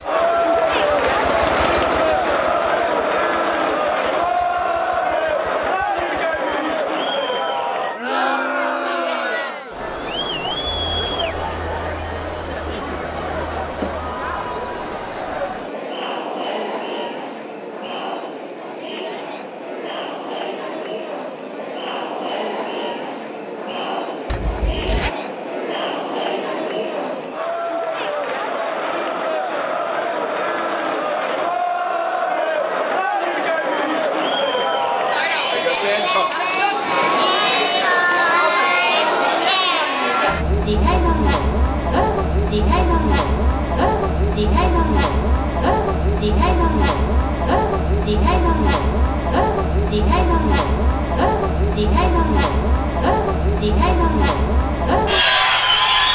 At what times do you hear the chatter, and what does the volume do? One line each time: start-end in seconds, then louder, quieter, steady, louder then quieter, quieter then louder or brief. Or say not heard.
0.0-56.1 quieter then louder.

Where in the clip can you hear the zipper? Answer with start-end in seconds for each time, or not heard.
24.2-25.1.